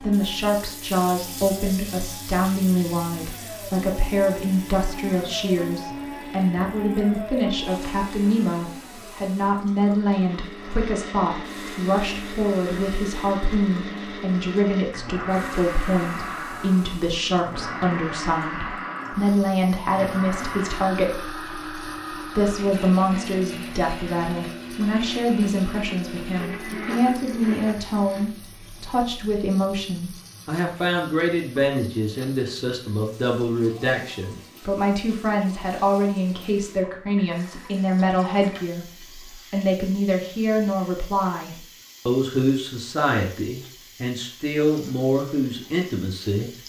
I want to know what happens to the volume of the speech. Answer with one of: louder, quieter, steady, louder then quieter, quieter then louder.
steady.